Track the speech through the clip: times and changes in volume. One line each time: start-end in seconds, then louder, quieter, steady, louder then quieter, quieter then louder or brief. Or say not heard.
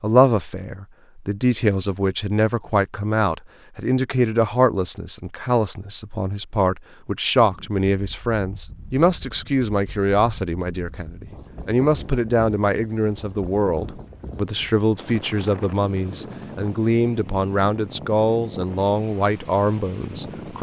0.0-20.5 steady.